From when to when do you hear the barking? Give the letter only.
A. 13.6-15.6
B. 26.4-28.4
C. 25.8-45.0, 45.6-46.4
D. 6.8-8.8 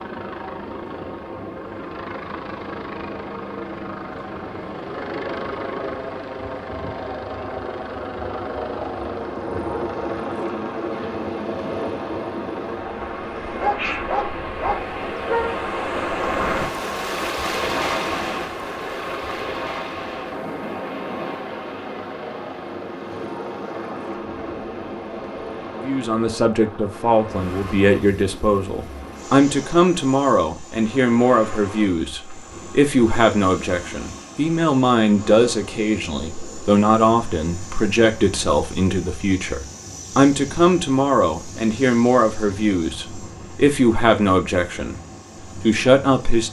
A.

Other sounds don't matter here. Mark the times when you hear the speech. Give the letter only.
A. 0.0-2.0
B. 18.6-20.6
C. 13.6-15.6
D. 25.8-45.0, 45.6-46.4
D.